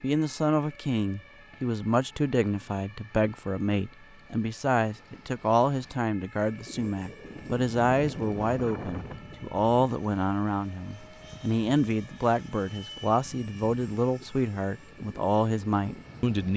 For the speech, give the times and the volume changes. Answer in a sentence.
You can hear the speech from 0.0 to 16.5 s, at a steady volume.